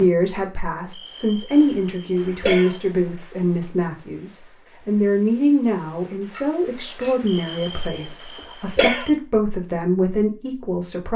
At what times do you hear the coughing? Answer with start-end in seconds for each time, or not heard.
0.9-2.8, 7.2-9.1.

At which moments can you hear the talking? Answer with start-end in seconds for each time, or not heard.
0.0-11.1.